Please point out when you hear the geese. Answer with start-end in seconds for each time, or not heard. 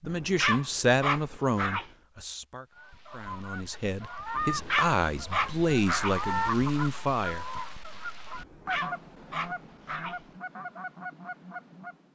2.7-12.0.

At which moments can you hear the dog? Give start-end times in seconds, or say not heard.
0.1-1.9, 4.3-6.2, 8.3-10.2.